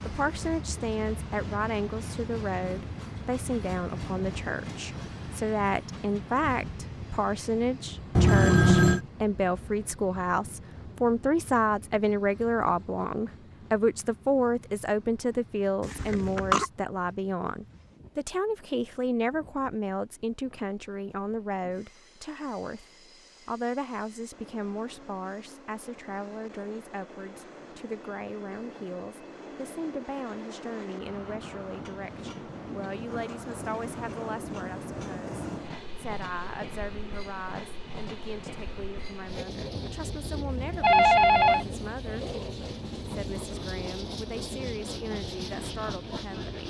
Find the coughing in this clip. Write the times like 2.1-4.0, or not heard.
15.8-16.7.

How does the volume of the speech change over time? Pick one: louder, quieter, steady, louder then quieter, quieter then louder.
quieter.